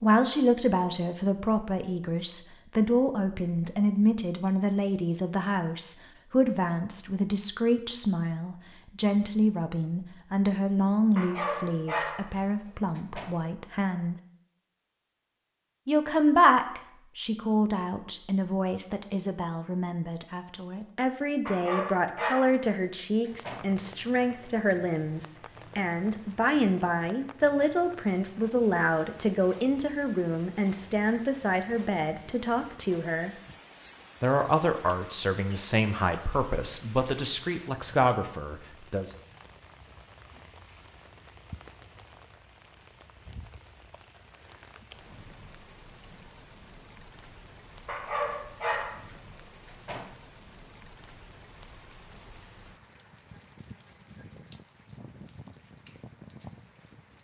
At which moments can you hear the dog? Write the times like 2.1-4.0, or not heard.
11.2-13.3, 21.4-23.6, 47.9-50.0.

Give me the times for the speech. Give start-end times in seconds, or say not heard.
0.0-14.2, 15.8-33.4, 34.2-39.1.